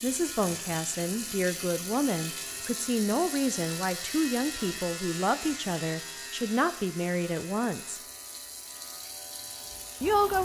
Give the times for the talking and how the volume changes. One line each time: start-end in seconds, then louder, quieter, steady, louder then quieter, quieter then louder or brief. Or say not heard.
0.0-8.0 steady
10.0-10.4 brief.